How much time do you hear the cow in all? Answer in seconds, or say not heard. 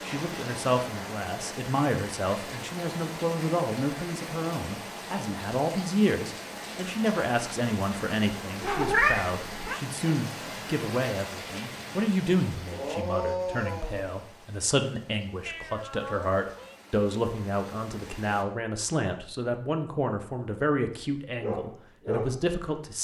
not heard.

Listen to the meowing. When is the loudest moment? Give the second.
9 s.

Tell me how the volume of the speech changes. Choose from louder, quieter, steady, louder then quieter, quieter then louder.
steady.